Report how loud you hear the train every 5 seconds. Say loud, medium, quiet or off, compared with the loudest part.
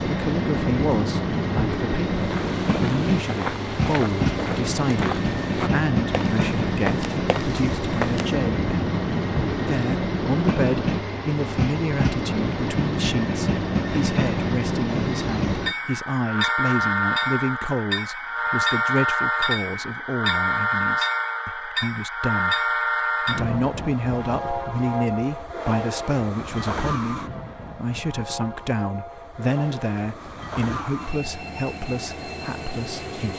loud, loud, loud, loud, loud, medium, medium.